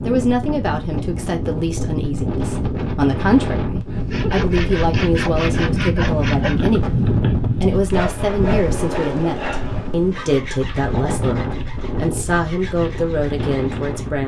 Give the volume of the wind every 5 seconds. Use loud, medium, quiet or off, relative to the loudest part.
loud, loud, medium.